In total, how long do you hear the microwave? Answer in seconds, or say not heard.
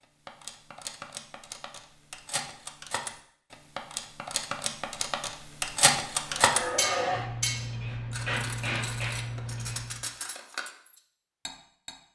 not heard.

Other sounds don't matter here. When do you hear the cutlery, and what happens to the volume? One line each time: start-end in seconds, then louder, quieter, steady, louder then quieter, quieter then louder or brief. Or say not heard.
0.0-11.9 louder then quieter.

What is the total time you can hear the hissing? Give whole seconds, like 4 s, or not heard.
4 s.